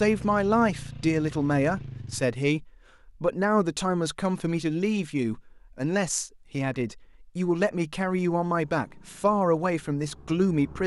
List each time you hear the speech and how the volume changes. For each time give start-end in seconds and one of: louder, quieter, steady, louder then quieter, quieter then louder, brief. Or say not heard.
0.0-10.8 steady.